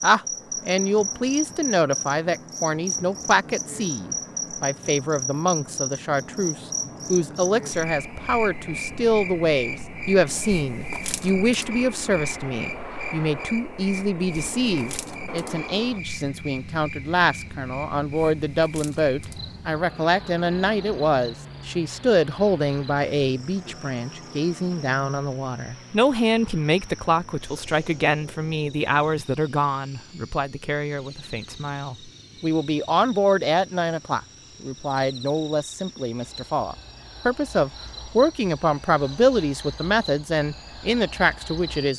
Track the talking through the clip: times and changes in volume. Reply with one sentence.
The talking can be heard from 0.0 to 41.9 s, at a steady volume.